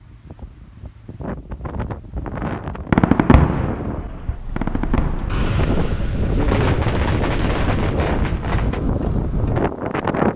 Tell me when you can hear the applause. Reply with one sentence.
You can't hear the applause here.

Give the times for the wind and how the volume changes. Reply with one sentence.
The wind can be heard from 0.0 to 10.3 s, getting louder.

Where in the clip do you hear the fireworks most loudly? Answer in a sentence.
The volume of the fireworks peaks at 3 seconds.